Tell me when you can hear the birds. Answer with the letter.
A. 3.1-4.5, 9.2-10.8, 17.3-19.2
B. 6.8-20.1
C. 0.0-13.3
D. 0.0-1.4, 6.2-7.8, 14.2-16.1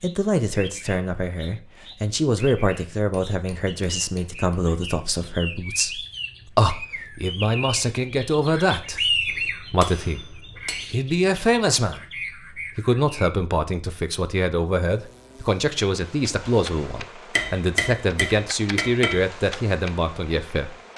C.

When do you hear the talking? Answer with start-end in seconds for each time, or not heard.
0.0-20.8.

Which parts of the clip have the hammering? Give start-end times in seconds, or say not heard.
3.1-4.5, 9.2-10.8, 17.3-19.2.